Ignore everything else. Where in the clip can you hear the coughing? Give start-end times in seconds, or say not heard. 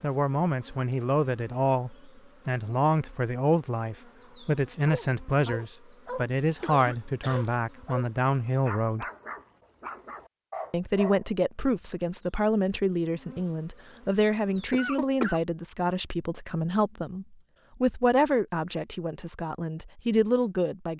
6.6-7.5, 14.7-15.4.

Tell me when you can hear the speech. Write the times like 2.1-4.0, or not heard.
0.0-9.1, 10.7-20.9.